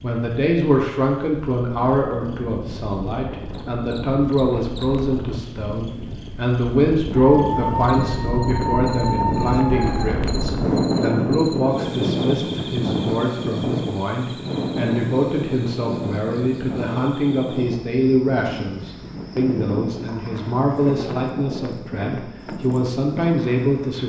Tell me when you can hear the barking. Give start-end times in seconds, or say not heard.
7.3-10.2.